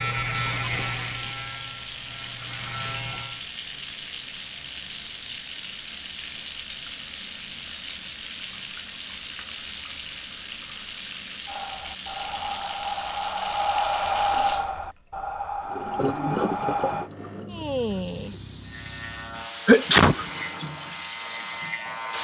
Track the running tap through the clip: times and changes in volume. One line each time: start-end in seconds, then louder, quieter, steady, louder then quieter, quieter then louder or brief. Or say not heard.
0.2-22.1 steady.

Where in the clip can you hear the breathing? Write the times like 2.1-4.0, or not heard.
11.4-17.1.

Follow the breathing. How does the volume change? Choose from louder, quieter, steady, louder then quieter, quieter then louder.
louder then quieter.